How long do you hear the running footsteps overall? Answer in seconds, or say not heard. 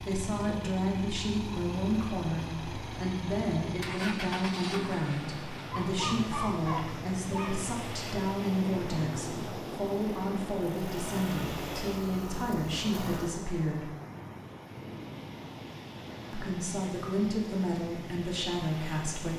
not heard.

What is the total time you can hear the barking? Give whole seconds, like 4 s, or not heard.
2 s.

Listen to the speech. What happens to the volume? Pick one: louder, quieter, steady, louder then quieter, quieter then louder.
steady.